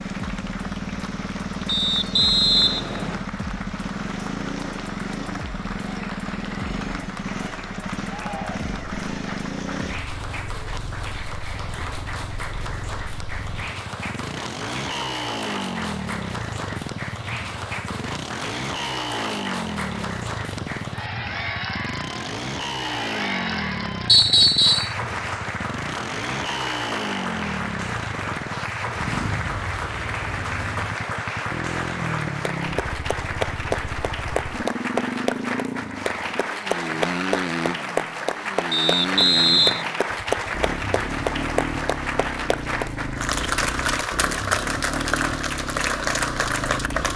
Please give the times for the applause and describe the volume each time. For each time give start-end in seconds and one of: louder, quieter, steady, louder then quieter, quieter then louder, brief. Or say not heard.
0.0-47.1 louder.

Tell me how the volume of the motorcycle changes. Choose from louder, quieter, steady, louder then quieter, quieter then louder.
steady.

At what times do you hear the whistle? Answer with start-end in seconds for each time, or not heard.
1.6-3.2, 24.1-24.9, 38.7-39.9.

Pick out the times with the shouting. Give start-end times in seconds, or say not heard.
8.1-8.7.